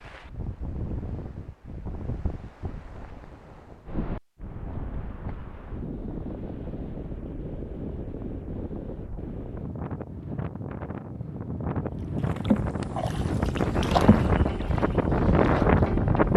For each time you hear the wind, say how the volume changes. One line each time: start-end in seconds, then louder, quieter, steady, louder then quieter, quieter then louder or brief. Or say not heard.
0.0-16.3 louder.